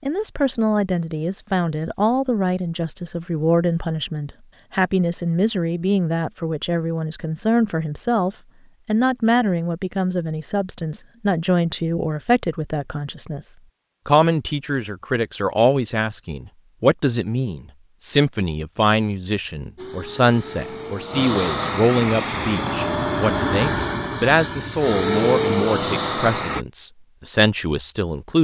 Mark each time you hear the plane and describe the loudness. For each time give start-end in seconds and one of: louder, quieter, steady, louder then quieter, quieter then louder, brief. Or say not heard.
19.8-26.6 louder.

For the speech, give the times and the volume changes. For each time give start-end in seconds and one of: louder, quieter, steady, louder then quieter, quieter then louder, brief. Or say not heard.
0.0-28.3 steady.